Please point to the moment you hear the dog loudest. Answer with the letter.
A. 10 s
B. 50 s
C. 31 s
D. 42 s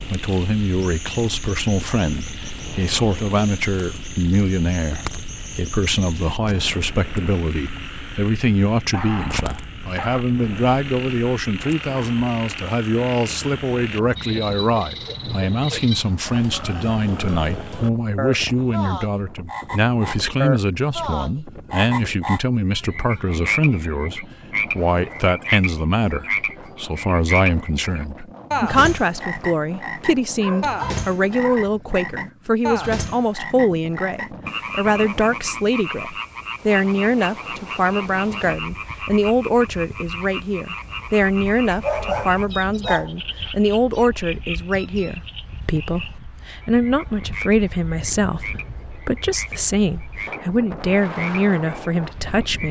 D.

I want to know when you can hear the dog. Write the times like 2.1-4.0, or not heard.
8.9-10.2, 30.4-31.8, 41.8-43.2.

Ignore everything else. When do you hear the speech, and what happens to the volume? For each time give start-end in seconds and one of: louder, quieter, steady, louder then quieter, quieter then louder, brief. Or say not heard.
0.0-52.6 steady.